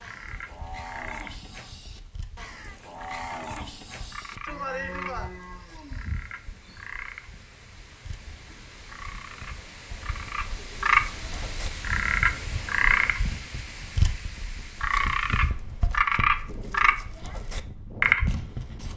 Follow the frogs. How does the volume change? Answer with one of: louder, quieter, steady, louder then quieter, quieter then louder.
louder.